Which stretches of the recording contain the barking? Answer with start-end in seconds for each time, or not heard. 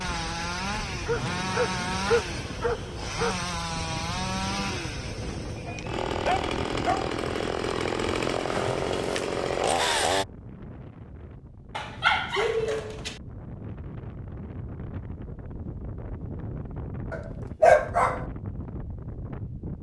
1.1-3.4, 5.7-7.1, 11.8-13.2, 17.1-18.2.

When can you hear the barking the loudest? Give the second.
18 s.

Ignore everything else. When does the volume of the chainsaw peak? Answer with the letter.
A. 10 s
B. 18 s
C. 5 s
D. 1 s
A.